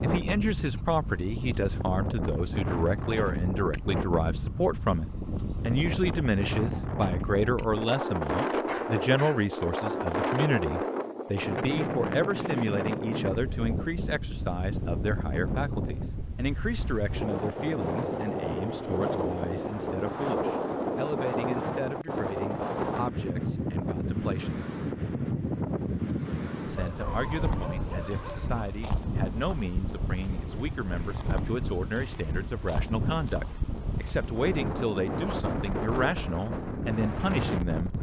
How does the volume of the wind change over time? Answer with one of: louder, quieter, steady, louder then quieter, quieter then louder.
steady.